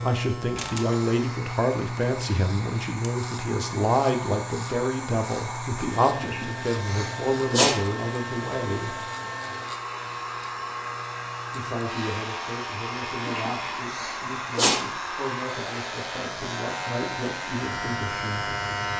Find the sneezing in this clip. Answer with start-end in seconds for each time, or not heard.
6.2-7.8, 13.2-14.8.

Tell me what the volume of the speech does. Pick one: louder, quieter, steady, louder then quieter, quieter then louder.
quieter.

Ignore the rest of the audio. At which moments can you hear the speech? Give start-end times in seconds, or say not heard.
0.0-9.1, 11.5-18.6.